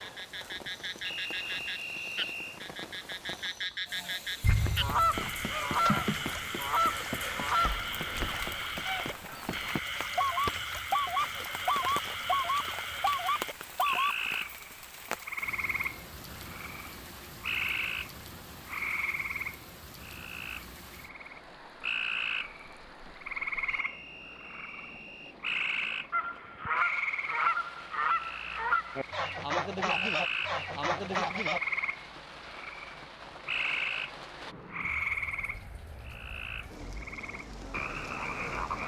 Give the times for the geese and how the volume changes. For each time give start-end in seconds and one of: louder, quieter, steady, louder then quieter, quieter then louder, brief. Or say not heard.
4.4-14.2 quieter then louder
26.1-31.6 steady.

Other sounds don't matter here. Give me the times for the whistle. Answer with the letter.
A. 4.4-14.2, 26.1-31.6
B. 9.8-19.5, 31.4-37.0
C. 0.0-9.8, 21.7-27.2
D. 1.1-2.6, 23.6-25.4
D.